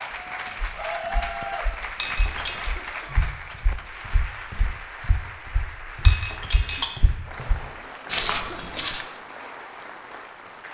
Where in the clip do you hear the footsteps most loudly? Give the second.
8 s.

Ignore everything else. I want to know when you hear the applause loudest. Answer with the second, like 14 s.
1 s.